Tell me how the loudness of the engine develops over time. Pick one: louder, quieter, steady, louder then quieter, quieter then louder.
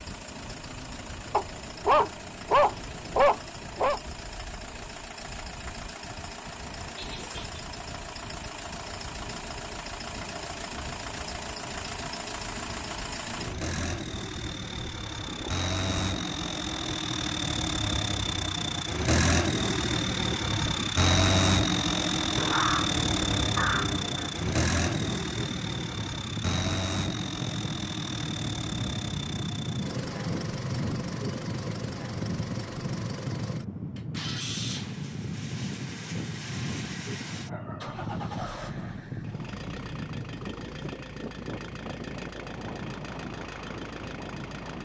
louder then quieter.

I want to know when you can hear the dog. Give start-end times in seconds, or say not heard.
1.3-4.0, 22.4-24.3, 37.5-38.9.